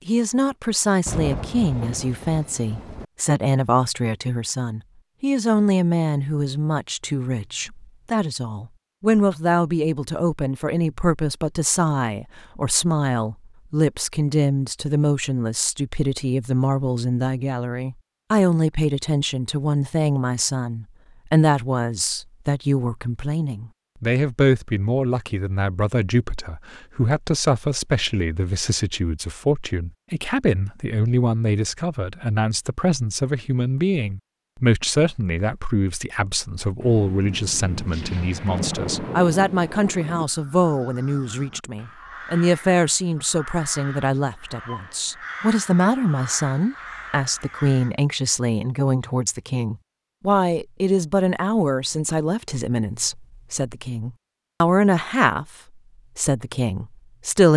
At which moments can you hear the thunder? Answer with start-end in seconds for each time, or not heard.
1.1-3.0, 36.8-40.2.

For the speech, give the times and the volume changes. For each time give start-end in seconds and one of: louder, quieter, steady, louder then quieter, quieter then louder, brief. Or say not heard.
0.1-55.5 steady
56.1-57.5 brief.